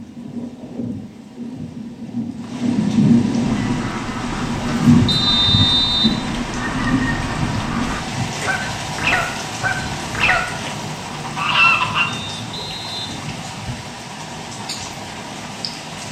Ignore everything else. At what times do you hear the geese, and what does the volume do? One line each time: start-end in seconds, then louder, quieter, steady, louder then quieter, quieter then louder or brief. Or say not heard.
3.4-12.1 louder.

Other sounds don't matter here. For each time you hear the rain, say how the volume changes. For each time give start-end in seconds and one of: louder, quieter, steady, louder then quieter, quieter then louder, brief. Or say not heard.
0.0-16.0 quieter.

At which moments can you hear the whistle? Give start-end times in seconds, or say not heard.
5.0-6.2, 12.1-13.2.